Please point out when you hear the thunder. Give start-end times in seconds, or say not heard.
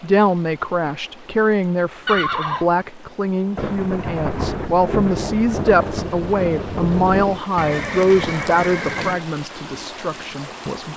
3.5-7.4.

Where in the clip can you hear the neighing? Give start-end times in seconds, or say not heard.
2.0-2.8, 7.5-9.2.